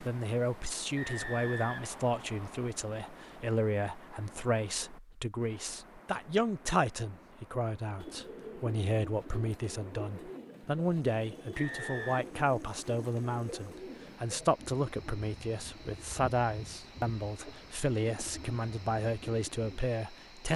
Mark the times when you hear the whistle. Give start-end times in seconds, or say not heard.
0.9-2.7, 11.6-12.2.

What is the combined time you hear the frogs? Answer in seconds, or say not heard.
not heard.